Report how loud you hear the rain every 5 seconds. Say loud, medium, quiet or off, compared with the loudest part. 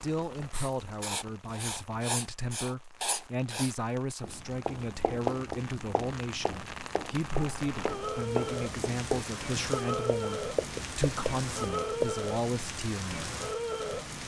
quiet, loud, loud.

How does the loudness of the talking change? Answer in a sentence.
The loudness of the talking stays about the same.